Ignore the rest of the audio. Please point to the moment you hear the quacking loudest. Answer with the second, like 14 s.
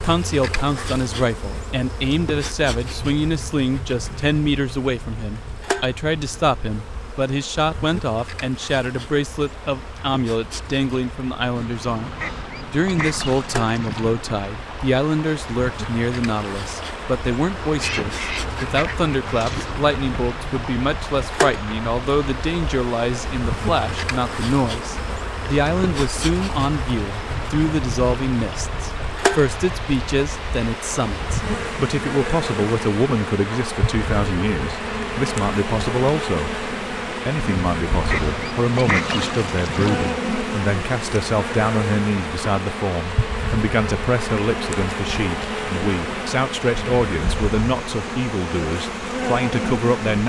39 s.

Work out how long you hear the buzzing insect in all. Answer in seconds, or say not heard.
50 s.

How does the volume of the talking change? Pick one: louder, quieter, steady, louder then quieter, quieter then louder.
steady.